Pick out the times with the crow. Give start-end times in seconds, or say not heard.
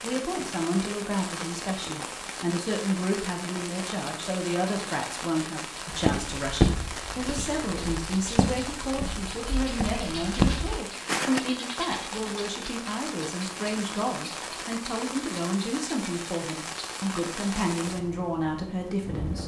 not heard.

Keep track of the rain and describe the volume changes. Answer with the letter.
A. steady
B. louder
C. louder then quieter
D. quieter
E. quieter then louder
A.